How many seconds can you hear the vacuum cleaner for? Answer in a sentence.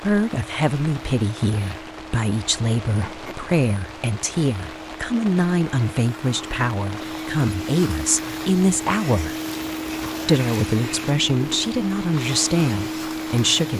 You can hear the vacuum cleaner for 14 seconds altogether.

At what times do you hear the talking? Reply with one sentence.
The talking can be heard from 0.0 to 9.3 s and from 10.2 to 13.7 s.